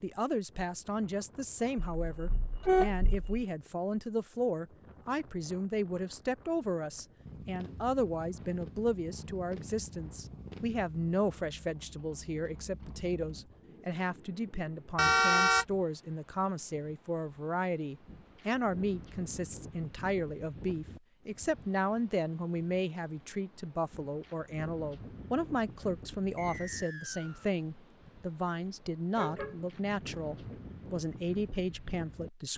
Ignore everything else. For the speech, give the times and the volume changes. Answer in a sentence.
The speech can be heard from 0.0 to 32.5 s, at a steady volume.